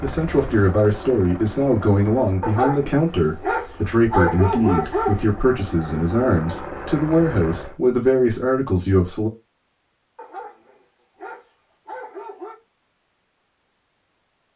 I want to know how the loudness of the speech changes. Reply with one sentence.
The loudness of the speech stays about the same.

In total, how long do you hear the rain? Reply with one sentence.
The rain can't be heard in this clip.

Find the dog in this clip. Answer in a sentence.
The dog can be heard from 2.4 to 5.3 s and from 10.2 to 12.6 s.